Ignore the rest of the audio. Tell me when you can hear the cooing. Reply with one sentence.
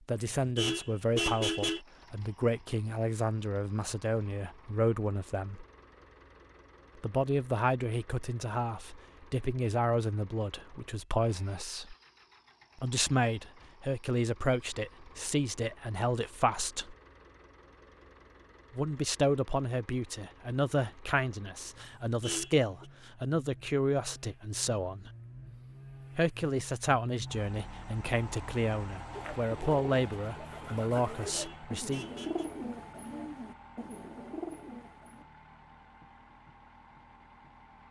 You can hear the cooing from 29.1 to 35.2 s.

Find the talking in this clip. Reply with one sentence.
The talking can be heard from 0.1 to 5.7 s, from 7.0 to 11.9 s, from 12.8 to 16.9 s, from 18.8 to 25.1 s and from 26.1 to 32.0 s.